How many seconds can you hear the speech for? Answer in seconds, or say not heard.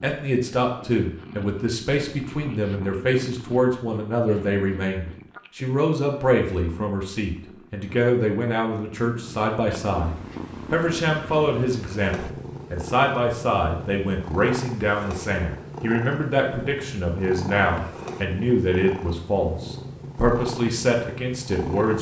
22 s.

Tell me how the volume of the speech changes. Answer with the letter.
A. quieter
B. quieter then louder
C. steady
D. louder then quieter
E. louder
C.